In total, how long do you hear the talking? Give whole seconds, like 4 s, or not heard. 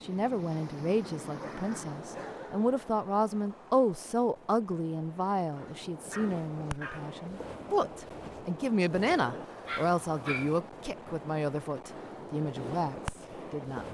14 s.